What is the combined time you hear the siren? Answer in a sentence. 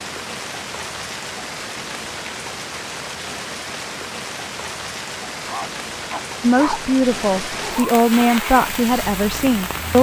The siren can't be heard in this clip.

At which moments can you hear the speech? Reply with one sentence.
The speech can be heard from 6.4 to 9.9 s.